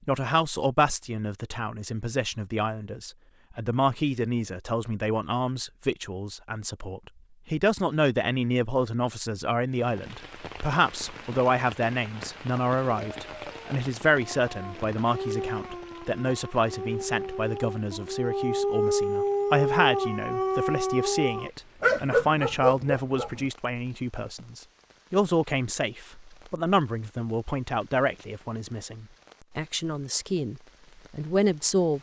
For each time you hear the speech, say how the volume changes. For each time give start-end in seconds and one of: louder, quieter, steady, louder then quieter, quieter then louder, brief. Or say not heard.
0.1-31.9 steady.